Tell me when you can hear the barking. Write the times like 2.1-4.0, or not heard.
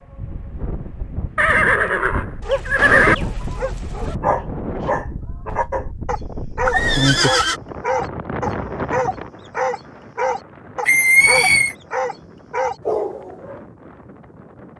2.4-13.6.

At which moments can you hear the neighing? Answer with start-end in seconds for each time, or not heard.
1.4-3.1, 6.7-7.6, 10.8-11.8.